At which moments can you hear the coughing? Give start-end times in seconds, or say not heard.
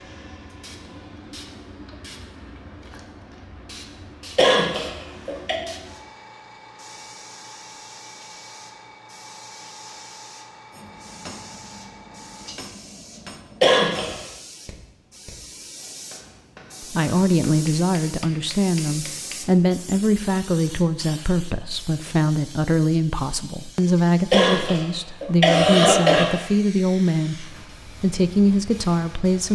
4.3-5.5, 13.6-14.2, 24.3-26.2.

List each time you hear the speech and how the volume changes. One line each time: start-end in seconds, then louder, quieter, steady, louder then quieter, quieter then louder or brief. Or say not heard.
16.8-29.5 steady.